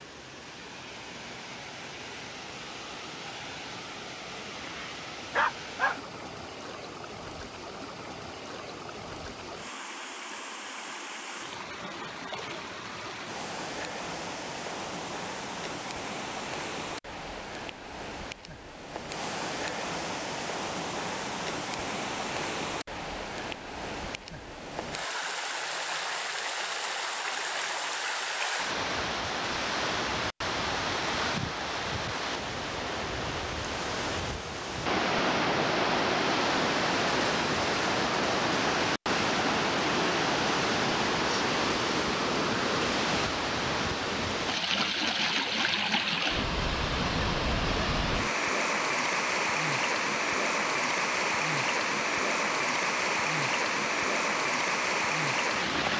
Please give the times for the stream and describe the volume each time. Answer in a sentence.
You can hear the stream from 0.0 to 55.9 s, getting louder.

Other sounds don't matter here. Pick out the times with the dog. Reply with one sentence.
The dog can be heard from 5.3 to 6.0 s.